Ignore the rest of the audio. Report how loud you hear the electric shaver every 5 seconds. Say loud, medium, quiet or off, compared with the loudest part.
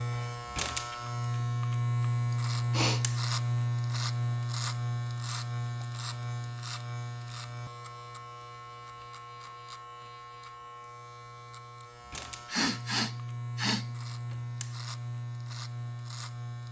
loud, medium, medium, medium.